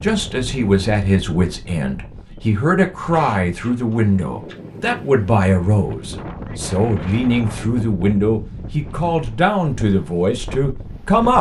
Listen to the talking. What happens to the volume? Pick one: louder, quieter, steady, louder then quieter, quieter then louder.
steady.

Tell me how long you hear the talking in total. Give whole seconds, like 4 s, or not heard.
11 s.